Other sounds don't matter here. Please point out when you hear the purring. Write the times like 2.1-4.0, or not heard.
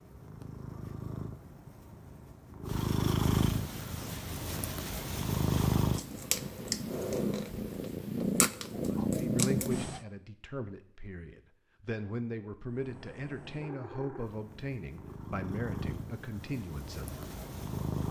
0.0-10.0, 12.7-18.0.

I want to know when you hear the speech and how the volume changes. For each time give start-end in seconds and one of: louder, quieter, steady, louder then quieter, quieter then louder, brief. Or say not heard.
8.8-17.2 steady.